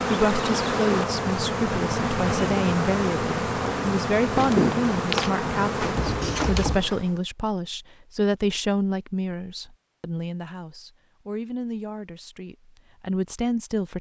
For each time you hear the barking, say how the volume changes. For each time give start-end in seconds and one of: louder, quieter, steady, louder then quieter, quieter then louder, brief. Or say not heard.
not heard.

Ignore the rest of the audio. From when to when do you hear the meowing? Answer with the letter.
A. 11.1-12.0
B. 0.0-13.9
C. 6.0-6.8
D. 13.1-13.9
C.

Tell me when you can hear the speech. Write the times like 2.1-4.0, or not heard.
0.0-13.9.